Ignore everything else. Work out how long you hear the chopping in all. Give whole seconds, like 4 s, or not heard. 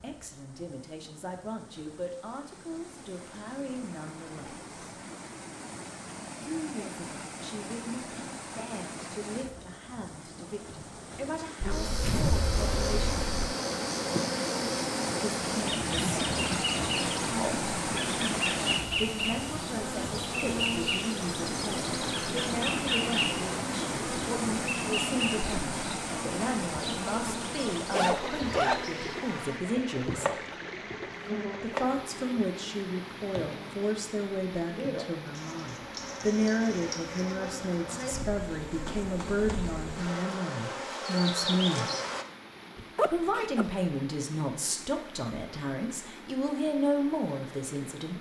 2 s.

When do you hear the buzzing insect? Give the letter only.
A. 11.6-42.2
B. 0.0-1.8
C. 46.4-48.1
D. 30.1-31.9
A.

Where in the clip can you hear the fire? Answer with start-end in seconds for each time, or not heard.
not heard.